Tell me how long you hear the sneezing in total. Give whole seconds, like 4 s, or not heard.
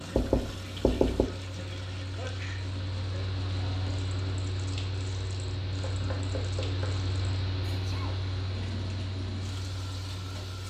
2 s.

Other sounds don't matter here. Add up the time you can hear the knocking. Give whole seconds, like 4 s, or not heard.
2 s.